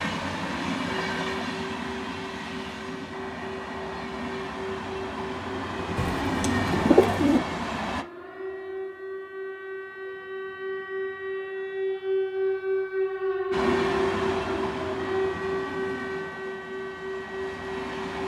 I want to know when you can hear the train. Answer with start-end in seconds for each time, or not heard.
0.0-8.1, 13.5-18.2.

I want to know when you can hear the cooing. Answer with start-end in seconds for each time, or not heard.
6.0-7.4.